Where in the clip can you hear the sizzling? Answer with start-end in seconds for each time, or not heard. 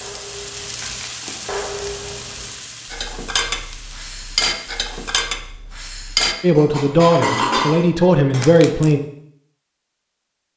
0.0-5.2.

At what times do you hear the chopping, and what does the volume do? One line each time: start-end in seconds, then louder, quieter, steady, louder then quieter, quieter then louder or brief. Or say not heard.
not heard.